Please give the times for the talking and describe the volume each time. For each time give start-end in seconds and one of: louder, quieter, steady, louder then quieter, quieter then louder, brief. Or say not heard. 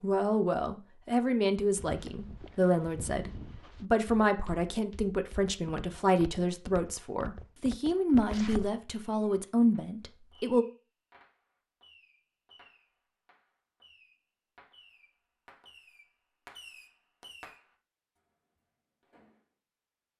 0.0-10.7 steady.